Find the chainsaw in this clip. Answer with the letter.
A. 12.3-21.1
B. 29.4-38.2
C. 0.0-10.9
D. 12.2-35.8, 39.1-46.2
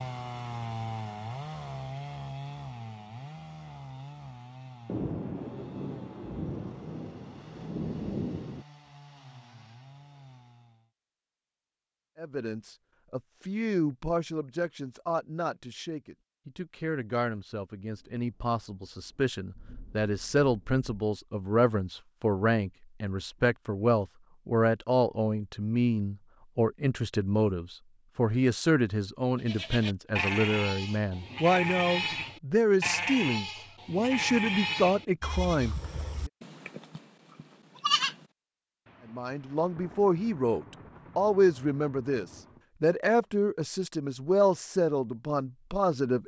C.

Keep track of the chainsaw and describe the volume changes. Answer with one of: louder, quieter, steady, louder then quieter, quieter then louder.
quieter.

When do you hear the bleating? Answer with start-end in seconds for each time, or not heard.
29.4-38.2.